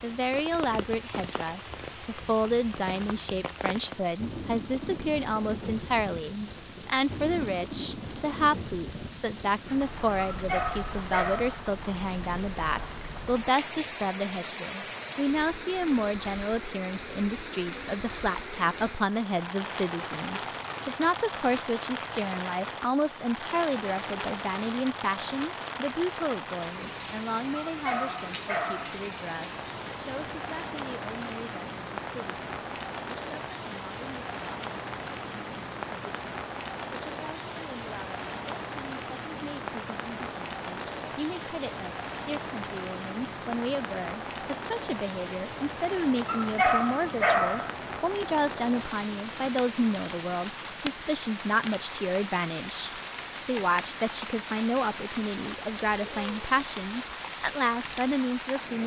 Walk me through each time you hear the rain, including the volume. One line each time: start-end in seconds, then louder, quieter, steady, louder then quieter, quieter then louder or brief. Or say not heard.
0.0-58.8 steady.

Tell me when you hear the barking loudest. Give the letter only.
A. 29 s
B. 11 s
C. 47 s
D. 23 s
C.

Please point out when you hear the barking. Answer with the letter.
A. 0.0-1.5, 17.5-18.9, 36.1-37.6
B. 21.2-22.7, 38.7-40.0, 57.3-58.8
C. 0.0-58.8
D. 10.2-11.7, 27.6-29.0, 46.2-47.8
D.